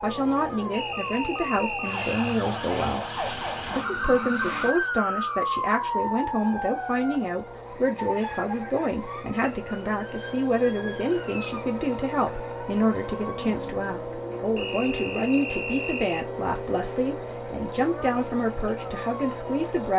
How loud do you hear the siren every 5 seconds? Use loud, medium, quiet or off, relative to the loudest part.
loud, loud, medium, medium.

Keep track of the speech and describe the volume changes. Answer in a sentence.
The volume of the speech stays about the same.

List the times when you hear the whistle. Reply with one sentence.
The whistle can be heard from 0.7 to 2.4 s and from 14.6 to 16.2 s.